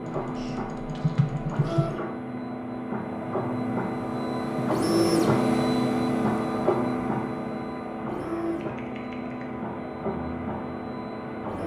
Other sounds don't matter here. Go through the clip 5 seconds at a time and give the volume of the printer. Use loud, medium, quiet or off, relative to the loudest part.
loud, loud, medium.